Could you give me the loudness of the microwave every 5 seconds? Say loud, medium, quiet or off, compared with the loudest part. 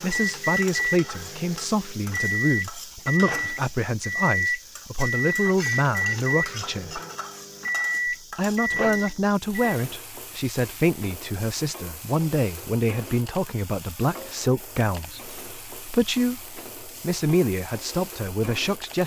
loud, loud, off, off.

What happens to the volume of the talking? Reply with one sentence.
The volume of the talking stays about the same.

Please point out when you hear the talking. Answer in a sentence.
The talking can be heard from 0.0 to 7.0 s and from 8.1 to 19.0 s.